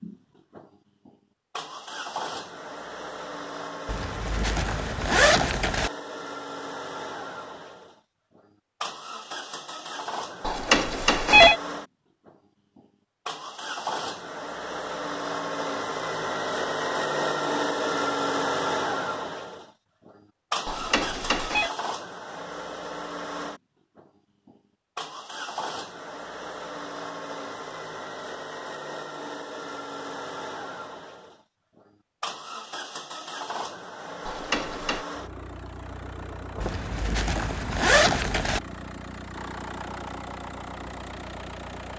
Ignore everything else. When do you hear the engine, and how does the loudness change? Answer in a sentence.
You can hear the engine from 0.0 to 41.9 s, getting louder then quieter.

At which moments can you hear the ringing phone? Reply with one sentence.
The ringing phone can be heard from 10.4 to 11.6 s, from 20.6 to 21.7 s and from 34.2 to 35.0 s.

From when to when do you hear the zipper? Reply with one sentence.
The zipper can be heard from 3.9 to 5.9 s and from 36.6 to 38.6 s.